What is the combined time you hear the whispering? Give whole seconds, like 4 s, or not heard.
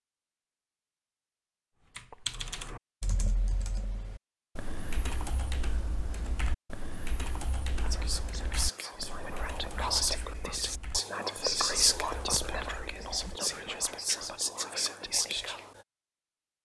8 s.